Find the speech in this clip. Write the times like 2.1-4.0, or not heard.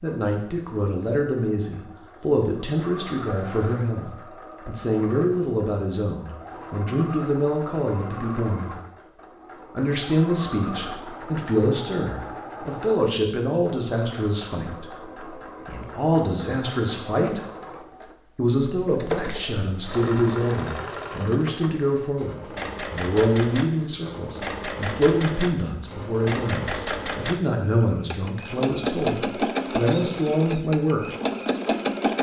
0.0-8.8, 9.8-14.9, 15.7-17.4, 18.4-31.0.